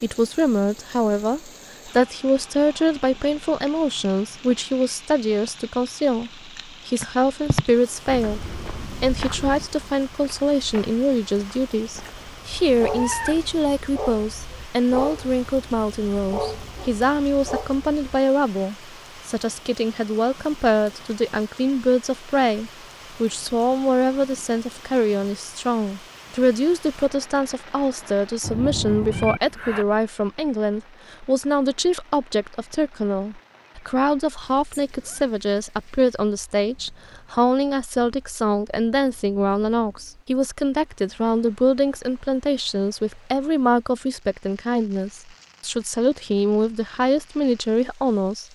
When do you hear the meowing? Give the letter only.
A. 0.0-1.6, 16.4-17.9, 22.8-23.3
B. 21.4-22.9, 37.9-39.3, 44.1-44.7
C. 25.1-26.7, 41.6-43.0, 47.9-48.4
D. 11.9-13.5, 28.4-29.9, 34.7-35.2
D.